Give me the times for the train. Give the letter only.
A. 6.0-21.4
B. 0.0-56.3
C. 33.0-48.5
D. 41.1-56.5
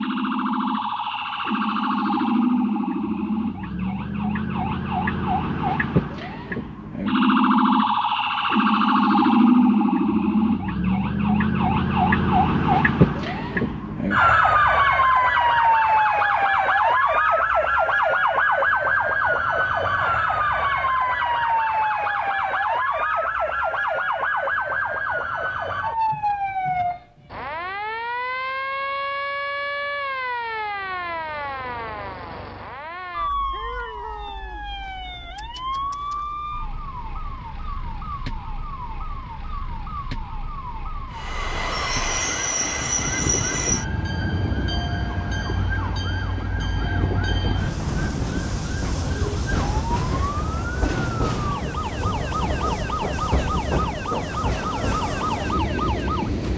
D.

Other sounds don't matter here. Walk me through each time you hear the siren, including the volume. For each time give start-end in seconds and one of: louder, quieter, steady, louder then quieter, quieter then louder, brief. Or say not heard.
0.0-56.3 quieter.